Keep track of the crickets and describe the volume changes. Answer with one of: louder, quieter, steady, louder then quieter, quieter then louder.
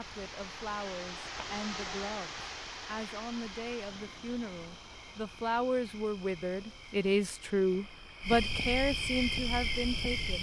louder.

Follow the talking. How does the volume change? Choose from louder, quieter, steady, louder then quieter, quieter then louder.
louder.